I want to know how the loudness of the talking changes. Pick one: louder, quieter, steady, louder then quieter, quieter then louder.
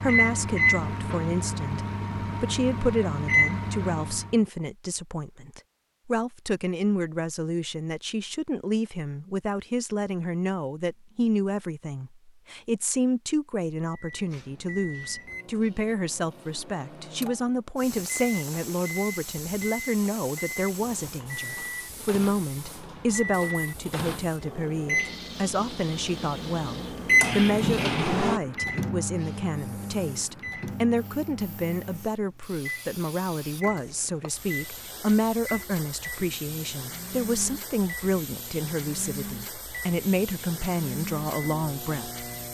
steady.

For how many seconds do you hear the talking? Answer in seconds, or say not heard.
42 s.